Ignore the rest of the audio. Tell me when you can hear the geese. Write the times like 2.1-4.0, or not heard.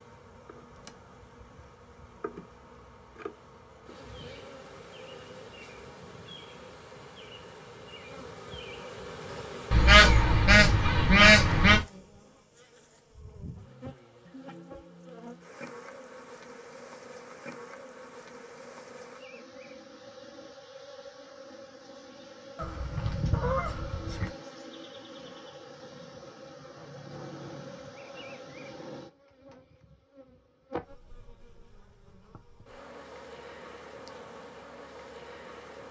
9.7-11.8, 22.6-24.3.